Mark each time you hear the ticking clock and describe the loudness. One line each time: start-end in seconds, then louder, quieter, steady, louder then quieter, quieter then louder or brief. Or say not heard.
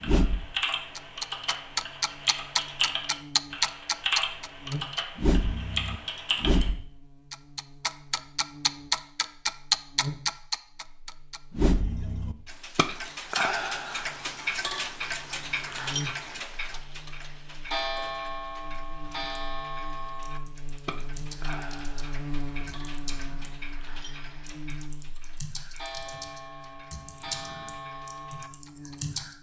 0.0-29.2 quieter.